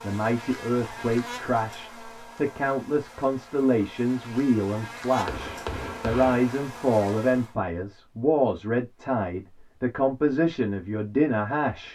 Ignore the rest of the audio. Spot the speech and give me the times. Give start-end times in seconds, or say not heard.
0.0-11.8.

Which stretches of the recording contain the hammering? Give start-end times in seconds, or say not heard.
5.2-6.6.